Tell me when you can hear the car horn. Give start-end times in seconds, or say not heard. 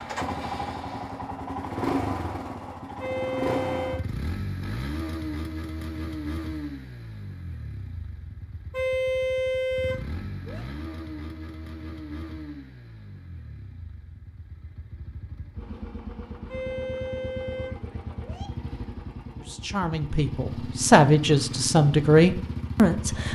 3.0-4.0, 8.7-10.7, 16.4-18.5.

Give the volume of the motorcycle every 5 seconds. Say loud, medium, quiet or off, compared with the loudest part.
loud, medium, medium, medium, loud.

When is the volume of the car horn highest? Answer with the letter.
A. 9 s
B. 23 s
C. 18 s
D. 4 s
A.